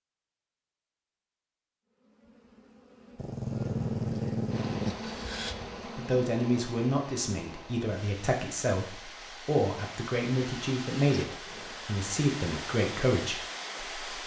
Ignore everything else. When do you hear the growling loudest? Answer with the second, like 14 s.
4 s.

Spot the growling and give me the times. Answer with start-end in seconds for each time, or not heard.
3.1-5.5, 11.2-11.8.